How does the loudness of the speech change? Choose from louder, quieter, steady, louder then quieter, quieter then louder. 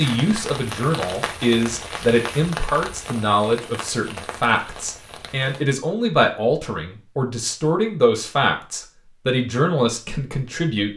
steady.